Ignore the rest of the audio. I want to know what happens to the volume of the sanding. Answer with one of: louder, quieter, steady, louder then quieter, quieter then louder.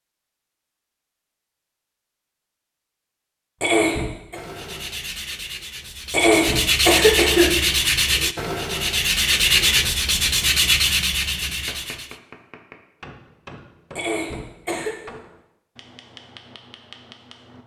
louder.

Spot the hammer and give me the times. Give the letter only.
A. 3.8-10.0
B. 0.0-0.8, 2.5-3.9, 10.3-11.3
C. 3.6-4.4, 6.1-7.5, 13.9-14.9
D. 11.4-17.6
D.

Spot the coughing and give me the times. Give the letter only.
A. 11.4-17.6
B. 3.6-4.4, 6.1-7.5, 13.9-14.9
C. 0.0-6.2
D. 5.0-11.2
B.